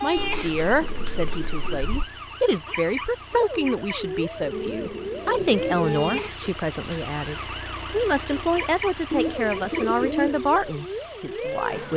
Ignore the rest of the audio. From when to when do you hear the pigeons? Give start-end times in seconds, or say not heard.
0.1-2.0, 4.4-6.3, 9.1-10.4.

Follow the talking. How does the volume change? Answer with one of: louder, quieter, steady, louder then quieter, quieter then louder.
steady.